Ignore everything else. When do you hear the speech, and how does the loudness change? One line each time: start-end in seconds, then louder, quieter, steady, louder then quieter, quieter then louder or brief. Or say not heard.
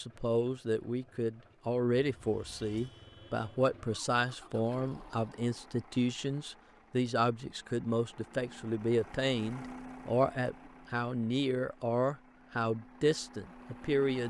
0.0-14.2 steady.